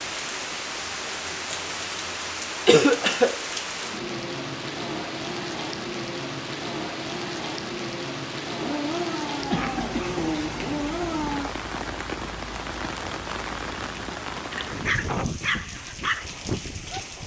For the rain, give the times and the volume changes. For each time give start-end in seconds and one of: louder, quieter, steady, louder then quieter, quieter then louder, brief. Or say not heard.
0.0-17.2 steady.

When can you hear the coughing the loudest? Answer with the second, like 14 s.
3 s.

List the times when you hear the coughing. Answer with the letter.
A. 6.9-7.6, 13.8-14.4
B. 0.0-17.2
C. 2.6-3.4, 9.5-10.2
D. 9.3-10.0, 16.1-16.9
C.